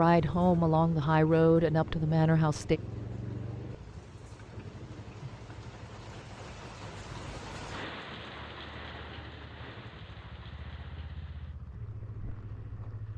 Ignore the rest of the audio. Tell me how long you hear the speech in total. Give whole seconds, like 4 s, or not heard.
3 s.